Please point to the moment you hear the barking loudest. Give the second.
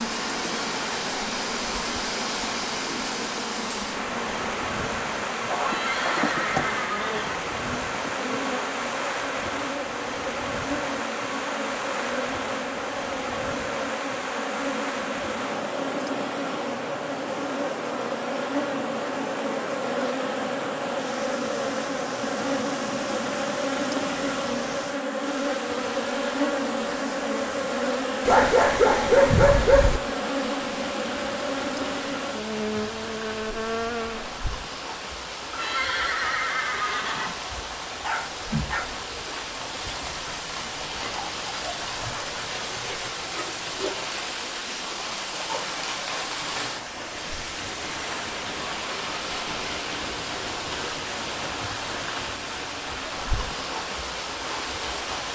29 s.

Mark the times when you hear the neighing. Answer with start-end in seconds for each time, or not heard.
5.6-7.5, 35.5-37.4.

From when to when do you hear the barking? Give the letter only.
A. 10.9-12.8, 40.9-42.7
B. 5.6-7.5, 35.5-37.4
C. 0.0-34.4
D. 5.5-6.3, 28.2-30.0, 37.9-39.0
D.